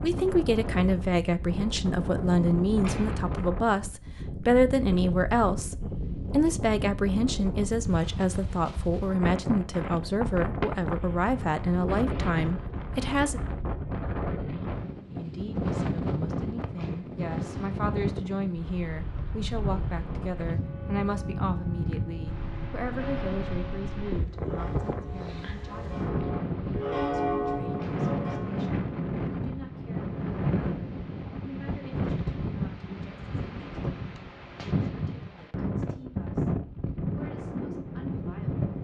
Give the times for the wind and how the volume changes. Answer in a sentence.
The wind can be heard from 0.0 to 38.7 s, at a steady volume.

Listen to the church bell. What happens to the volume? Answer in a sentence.
The loudness of the church bell goes up.